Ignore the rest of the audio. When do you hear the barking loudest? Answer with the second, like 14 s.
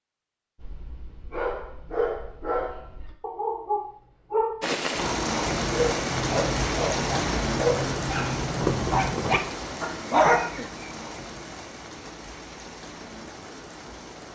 10 s.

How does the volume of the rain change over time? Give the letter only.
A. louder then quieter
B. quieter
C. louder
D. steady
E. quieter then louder
B.